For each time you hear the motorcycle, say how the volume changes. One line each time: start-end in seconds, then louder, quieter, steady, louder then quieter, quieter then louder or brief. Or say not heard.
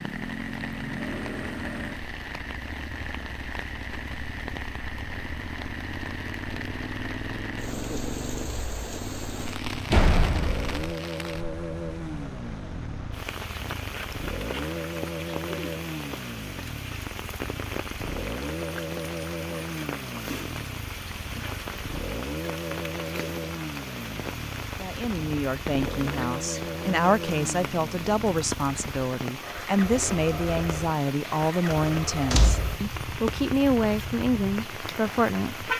0.0-35.7 steady.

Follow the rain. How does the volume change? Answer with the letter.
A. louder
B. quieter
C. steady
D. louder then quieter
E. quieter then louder
C.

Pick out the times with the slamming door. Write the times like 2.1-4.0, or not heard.
9.9-10.8, 32.3-32.8.